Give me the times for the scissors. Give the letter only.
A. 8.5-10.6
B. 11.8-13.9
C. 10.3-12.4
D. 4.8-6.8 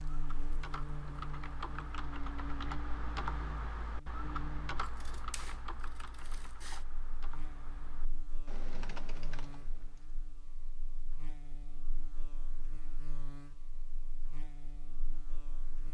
D.